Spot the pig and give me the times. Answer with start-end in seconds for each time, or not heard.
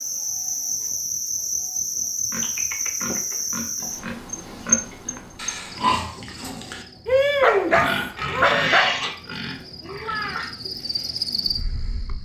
1.9-10.6.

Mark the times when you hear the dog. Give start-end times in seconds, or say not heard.
7.4-9.0.